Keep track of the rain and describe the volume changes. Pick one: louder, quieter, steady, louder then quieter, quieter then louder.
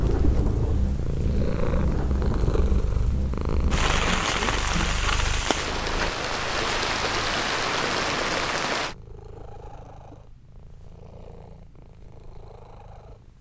louder.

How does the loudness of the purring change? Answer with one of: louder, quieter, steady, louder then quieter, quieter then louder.
quieter.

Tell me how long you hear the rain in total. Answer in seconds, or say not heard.
9 s.